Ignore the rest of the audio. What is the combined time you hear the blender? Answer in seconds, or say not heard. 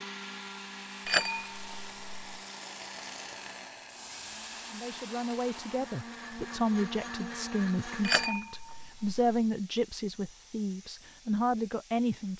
8 s.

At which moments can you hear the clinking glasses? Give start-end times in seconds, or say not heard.
1.1-2.4, 8.0-9.4.